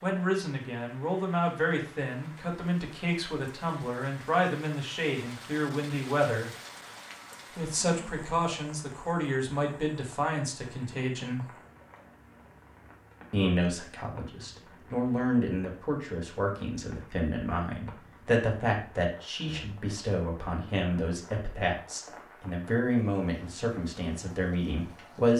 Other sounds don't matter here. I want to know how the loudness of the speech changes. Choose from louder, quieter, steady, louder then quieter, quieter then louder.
steady.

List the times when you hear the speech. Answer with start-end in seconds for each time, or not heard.
0.0-6.5, 7.5-11.5, 13.3-25.3.